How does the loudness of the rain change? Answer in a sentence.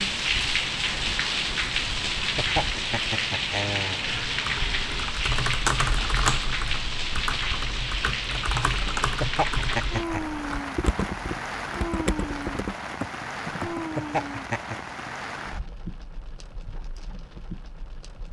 The volume of the rain goes down.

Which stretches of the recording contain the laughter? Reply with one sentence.
The laughter can be heard from 2.1 to 4.3 s, from 8.8 to 10.2 s and from 13.8 to 14.8 s.